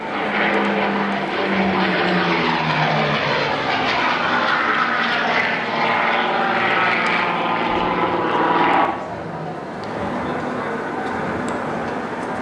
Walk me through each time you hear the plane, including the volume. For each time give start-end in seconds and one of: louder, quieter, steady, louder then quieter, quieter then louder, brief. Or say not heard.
0.0-12.3 quieter.